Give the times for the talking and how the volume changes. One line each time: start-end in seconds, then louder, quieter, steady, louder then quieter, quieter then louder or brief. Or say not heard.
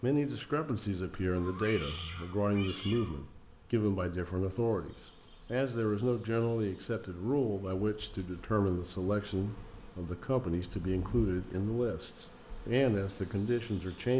0.0-14.1 steady.